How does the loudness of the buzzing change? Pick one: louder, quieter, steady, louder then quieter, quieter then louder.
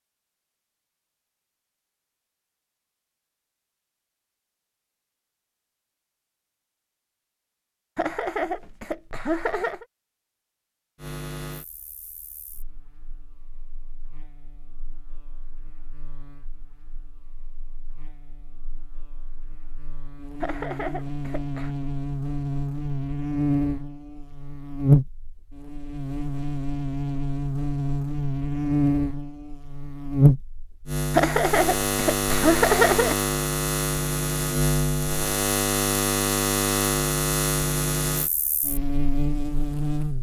louder.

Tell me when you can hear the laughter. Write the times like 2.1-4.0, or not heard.
8.0-9.8, 20.4-21.8, 31.1-33.1.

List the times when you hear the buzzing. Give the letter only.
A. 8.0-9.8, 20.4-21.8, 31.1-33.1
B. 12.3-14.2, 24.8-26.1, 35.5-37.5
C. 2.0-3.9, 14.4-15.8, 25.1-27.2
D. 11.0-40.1
D.